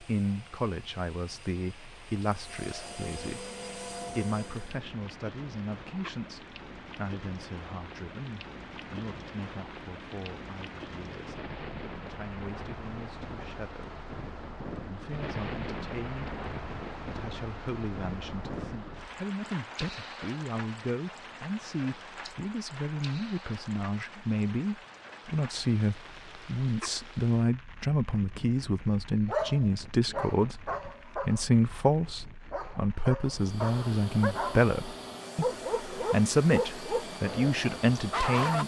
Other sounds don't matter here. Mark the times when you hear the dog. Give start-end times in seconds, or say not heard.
29.2-31.6, 32.5-38.6.